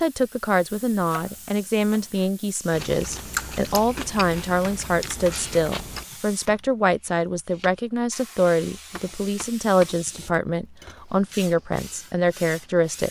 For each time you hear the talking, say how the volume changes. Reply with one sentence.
You can hear the talking from 0.0 to 13.0 s, at a steady volume.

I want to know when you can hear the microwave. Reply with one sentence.
You can't hear the microwave here.